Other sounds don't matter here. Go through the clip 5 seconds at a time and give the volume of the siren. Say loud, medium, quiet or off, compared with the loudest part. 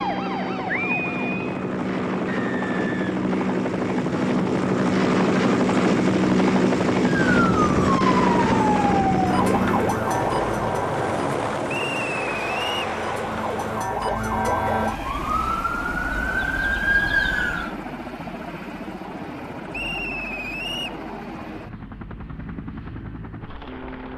medium, loud, loud, loud, off.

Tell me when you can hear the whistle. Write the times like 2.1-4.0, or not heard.
2.3-3.2, 11.7-12.8, 19.7-21.0.